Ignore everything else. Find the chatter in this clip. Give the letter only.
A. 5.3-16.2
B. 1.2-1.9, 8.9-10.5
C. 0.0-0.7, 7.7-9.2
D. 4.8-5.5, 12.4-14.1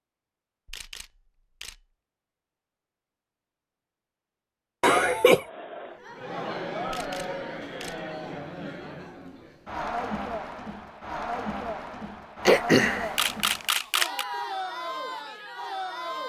A.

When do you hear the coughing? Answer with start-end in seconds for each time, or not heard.
4.8-5.5, 12.4-14.1.